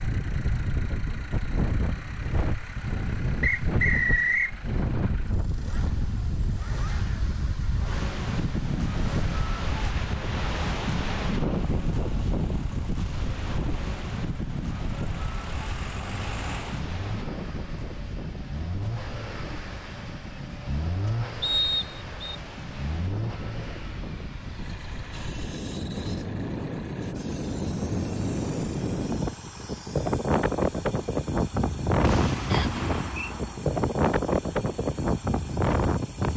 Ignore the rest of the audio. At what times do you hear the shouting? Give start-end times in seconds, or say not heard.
not heard.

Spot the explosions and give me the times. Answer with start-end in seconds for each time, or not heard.
32.0-33.6.